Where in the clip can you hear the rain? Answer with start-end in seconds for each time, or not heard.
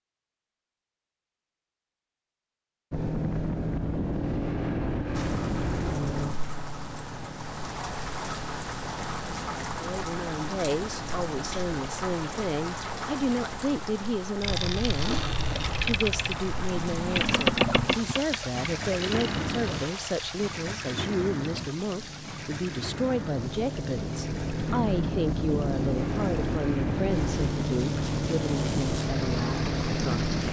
5.2-30.4.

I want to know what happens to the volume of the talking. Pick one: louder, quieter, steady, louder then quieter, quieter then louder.
steady.